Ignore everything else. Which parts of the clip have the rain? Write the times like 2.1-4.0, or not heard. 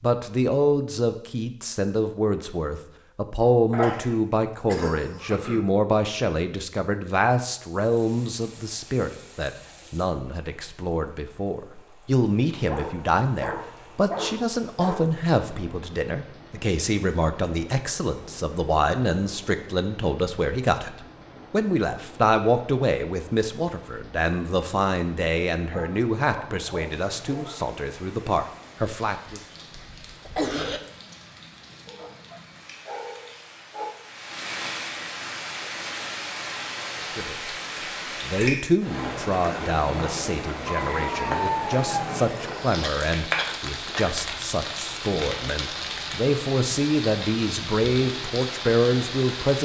7.7-49.6.